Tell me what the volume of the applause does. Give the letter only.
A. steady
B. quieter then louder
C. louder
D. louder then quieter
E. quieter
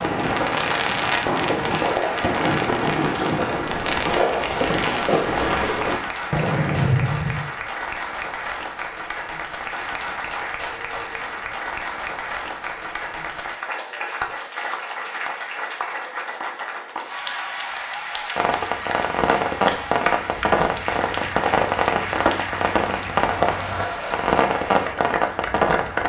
A.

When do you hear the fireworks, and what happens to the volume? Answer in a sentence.
The fireworks can be heard from 0.0 to 7.5 s, at a steady volume; and from 18.4 to 26.0 s, at a steady volume.